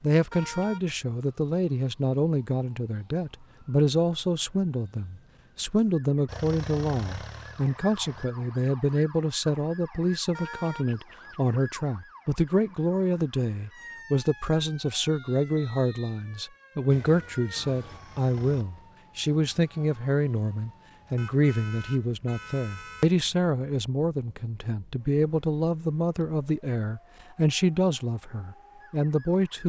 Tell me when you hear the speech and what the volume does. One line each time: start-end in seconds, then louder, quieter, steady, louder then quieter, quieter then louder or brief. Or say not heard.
0.0-29.6 steady.